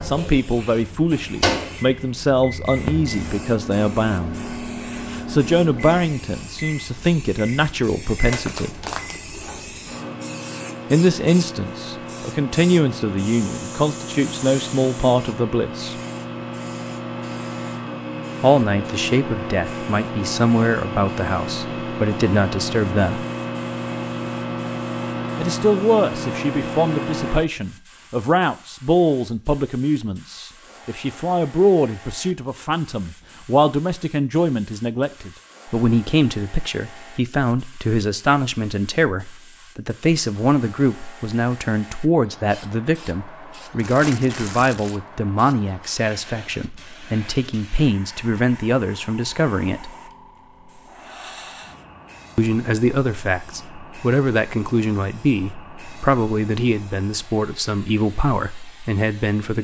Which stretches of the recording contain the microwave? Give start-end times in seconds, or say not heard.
0.0-27.4.